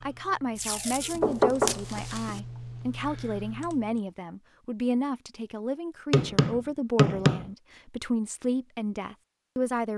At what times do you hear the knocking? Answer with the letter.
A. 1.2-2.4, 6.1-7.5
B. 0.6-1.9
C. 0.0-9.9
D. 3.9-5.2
A.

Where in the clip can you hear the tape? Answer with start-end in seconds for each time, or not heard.
0.6-1.9.